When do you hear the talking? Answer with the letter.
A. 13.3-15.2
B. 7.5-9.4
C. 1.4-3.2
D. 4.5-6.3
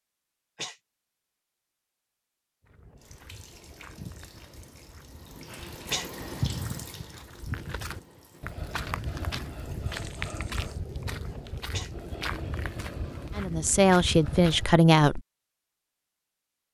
A.